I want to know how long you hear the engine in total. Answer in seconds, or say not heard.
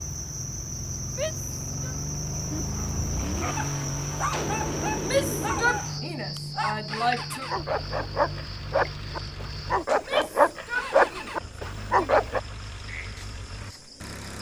14 s.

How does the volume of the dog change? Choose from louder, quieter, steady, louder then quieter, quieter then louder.
louder.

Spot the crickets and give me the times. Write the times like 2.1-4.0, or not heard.
0.0-14.3.